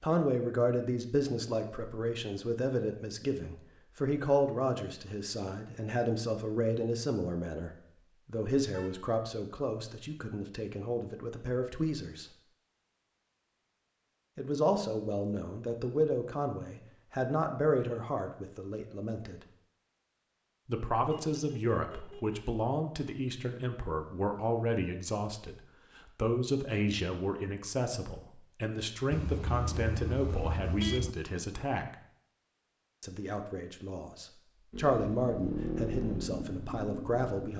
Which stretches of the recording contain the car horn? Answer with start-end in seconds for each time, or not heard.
8.7-9.2, 21.1-22.4, 29.1-31.1.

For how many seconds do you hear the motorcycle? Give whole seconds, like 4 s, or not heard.
3 s.